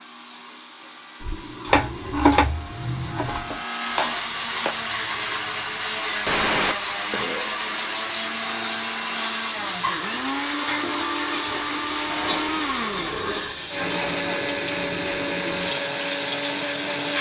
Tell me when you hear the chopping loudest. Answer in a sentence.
The loudest moment of the chopping is at 2 seconds.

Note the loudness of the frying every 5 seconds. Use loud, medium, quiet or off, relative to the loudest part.
quiet, medium, loud, loud.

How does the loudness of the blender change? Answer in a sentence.
The volume of the blender goes up.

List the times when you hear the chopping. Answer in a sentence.
The chopping can be heard from 1.6 to 4.8 s.